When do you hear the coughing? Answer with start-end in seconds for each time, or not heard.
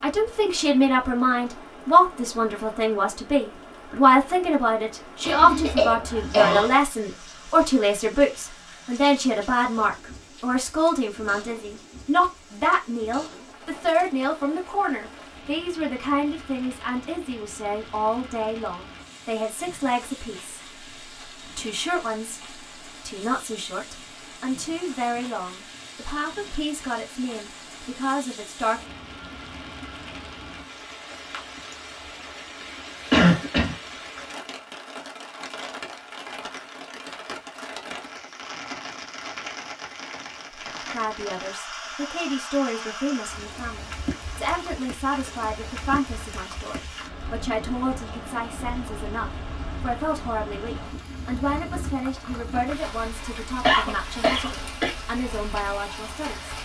5.2-6.7, 33.1-33.8, 53.6-55.0.